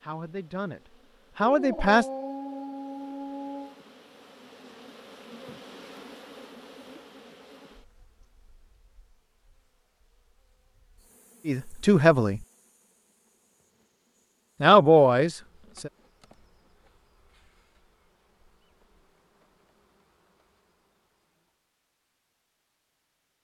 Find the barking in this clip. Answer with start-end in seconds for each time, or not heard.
1.4-3.8.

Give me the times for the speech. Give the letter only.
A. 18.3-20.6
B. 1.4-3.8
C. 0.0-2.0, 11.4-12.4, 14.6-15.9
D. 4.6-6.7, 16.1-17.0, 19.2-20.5
C.